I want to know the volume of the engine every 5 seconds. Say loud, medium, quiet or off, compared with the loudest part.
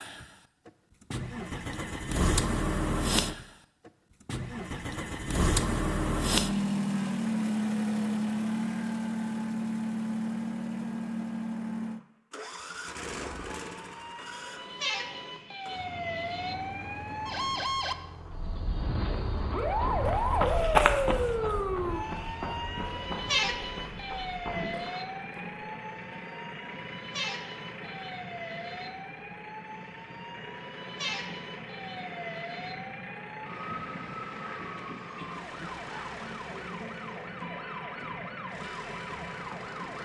loud, loud, medium, quiet, quiet, quiet, quiet, quiet.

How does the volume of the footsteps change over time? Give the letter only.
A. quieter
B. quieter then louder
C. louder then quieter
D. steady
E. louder
A.